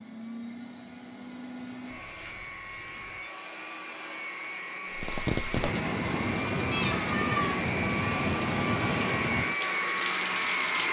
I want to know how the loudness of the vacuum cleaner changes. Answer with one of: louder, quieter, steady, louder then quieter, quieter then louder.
louder.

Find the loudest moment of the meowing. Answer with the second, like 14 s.
7 s.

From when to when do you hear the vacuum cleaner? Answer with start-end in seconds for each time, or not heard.
0.0-10.8.